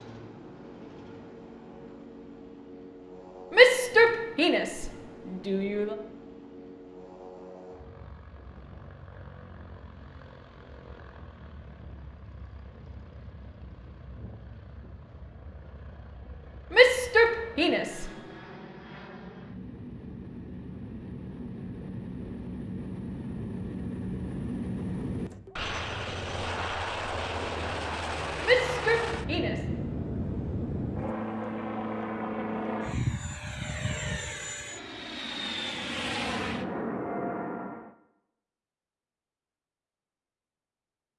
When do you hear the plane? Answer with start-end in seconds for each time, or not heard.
0.0-38.0.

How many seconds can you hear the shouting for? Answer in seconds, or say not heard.
5 s.